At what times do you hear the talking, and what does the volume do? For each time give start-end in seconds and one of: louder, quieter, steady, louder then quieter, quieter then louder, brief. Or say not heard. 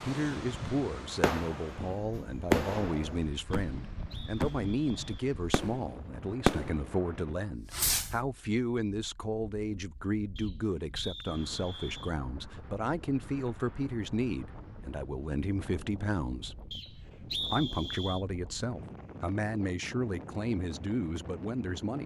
0.0-16.6 steady
17.5-22.0 steady.